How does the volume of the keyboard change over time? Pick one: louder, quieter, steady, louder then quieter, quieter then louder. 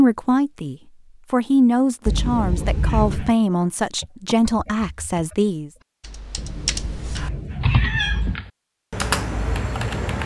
louder.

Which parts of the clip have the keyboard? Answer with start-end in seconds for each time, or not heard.
4.0-10.2.